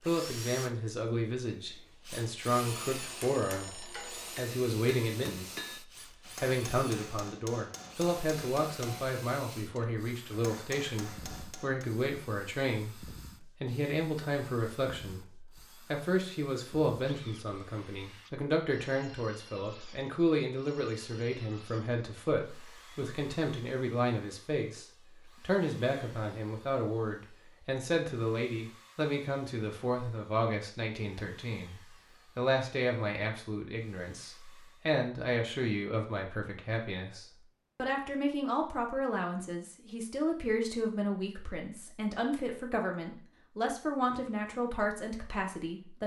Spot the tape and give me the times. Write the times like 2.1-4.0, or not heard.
not heard.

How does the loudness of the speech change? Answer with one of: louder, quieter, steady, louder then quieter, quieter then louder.
steady.